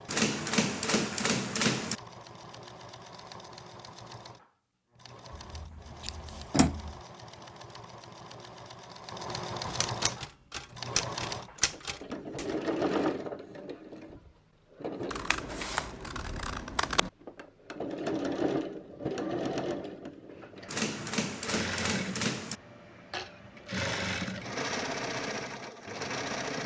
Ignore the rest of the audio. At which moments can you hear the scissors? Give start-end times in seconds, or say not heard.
5.3-7.0, 15.1-17.1.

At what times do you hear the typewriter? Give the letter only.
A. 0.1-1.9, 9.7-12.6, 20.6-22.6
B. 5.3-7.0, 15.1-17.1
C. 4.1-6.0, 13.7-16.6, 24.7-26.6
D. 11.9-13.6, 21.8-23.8
A.